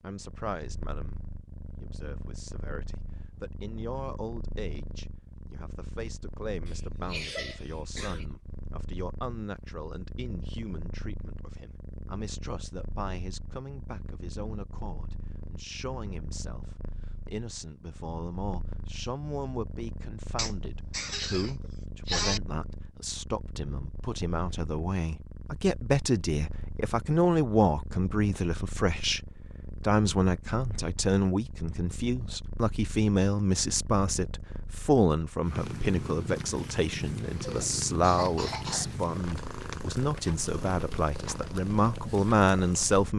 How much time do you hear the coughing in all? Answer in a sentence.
The coughing can be heard for 5 seconds in total.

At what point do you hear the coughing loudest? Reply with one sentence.
The loudest moment of the coughing is at 22 seconds.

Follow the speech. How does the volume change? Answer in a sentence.
The volume of the speech goes up.